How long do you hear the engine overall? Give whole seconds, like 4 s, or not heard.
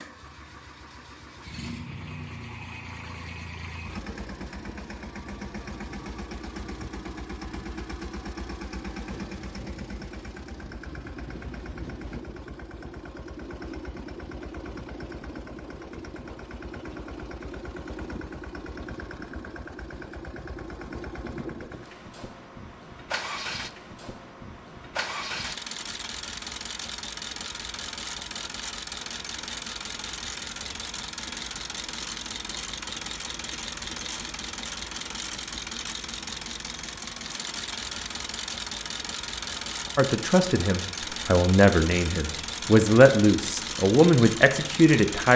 45 s.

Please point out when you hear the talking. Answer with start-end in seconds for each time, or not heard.
40.0-45.3.